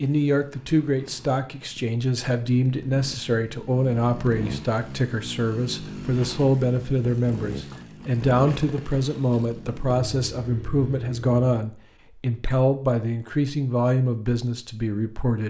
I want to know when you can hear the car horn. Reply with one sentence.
The car horn can't be heard in this clip.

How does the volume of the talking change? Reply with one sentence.
The volume of the talking stays about the same.